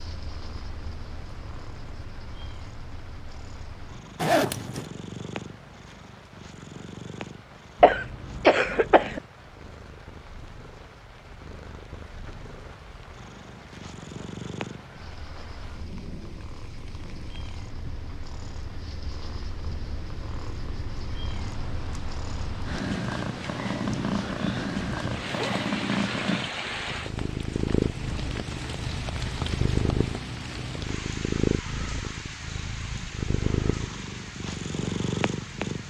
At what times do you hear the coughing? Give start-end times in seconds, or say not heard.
7.8-9.2.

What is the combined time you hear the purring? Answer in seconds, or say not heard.
36 s.